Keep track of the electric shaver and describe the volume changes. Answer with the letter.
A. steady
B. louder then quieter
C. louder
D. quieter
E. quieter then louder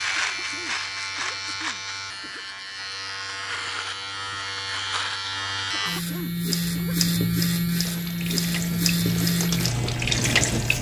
C.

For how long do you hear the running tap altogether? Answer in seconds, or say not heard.
3 s.